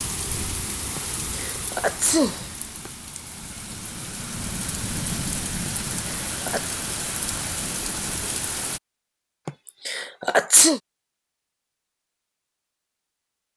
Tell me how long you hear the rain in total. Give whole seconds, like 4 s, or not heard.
9 s.